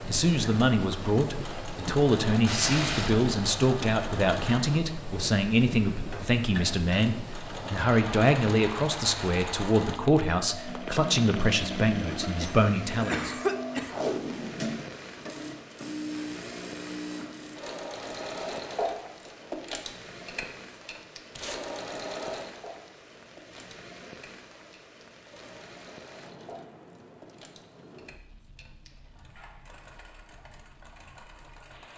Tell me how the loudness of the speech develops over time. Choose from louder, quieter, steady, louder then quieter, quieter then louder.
steady.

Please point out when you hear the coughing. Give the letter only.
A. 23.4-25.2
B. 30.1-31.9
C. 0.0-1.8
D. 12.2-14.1
D.